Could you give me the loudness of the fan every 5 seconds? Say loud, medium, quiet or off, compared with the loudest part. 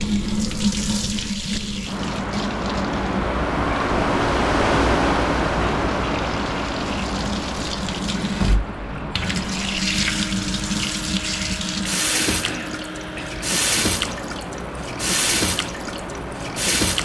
loud, loud, medium, medium.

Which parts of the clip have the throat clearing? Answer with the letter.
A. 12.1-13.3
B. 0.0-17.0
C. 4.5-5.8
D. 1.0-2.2
A.